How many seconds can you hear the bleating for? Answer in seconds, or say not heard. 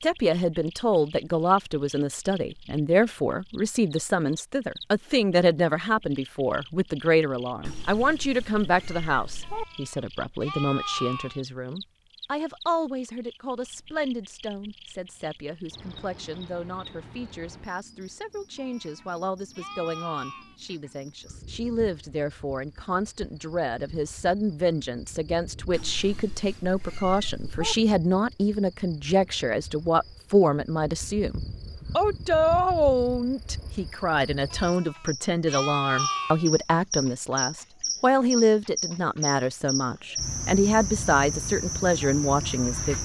6 s.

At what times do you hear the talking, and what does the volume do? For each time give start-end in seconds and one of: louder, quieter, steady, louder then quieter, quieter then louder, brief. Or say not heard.
0.0-43.0 quieter then louder.